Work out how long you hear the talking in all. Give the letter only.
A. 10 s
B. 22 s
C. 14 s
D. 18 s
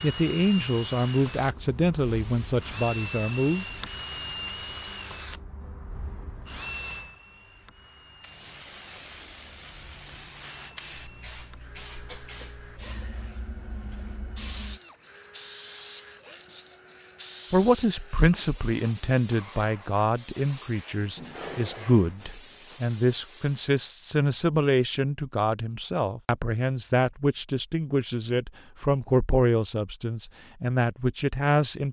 D.